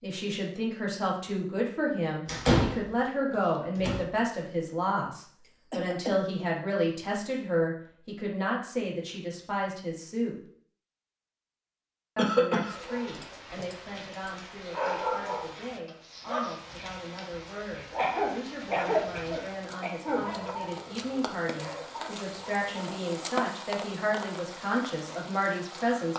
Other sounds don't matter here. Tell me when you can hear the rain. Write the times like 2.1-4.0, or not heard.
12.7-26.1.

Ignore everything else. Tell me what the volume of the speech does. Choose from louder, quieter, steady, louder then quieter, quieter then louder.
quieter then louder.